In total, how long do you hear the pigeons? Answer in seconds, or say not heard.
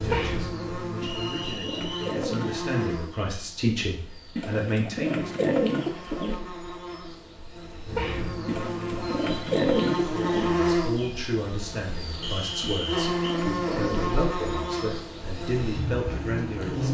7 s.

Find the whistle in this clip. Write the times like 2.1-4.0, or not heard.
1.0-2.1, 12.2-13.2.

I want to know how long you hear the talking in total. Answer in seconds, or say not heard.
12 s.